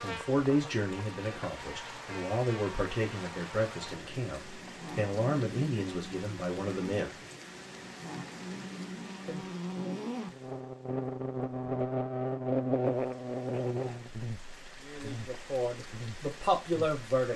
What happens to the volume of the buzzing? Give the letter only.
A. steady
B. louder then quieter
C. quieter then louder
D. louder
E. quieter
D.